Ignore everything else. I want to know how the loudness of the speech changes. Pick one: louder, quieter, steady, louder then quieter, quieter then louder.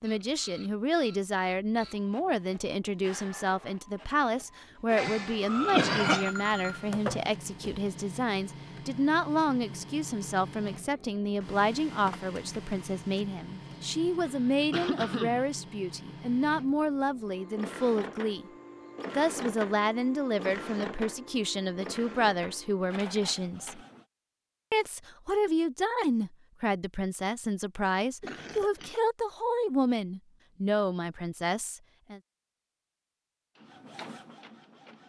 steady.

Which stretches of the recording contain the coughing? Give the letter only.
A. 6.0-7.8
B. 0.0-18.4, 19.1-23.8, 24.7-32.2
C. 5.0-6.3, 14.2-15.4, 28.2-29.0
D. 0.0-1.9
C.